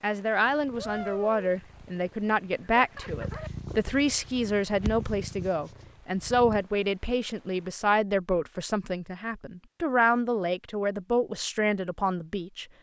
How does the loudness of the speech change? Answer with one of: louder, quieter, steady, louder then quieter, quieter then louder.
steady.